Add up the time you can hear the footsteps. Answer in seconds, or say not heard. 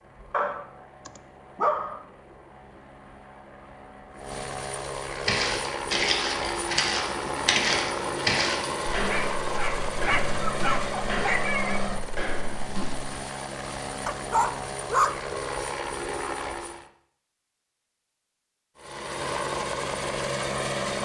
8 s.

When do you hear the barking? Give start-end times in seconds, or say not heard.
0.3-2.0, 9.1-11.8, 14.1-15.2.